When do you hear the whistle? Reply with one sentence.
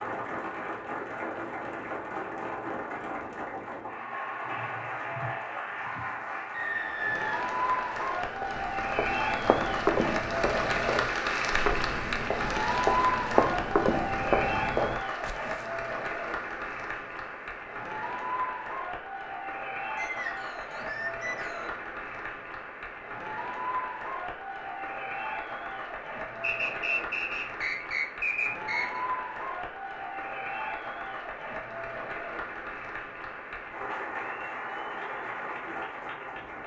The whistle can be heard from 6.5 to 8.1 s, from 19.9 to 21.8 s and from 26.4 to 29.0 s.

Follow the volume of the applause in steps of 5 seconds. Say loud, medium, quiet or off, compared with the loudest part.
medium, loud, loud, medium, medium, medium, medium, medium.